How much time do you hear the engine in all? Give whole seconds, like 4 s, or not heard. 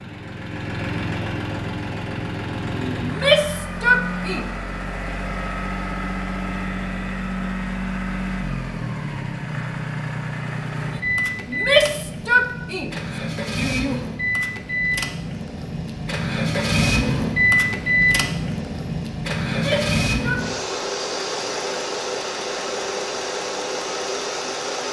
25 s.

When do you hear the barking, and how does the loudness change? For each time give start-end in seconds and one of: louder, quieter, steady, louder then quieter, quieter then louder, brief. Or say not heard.
not heard.